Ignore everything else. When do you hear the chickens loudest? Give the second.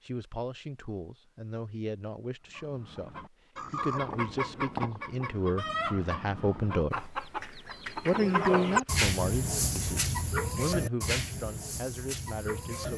9 s.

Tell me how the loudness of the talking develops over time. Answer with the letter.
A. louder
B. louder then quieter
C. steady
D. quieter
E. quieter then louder
B.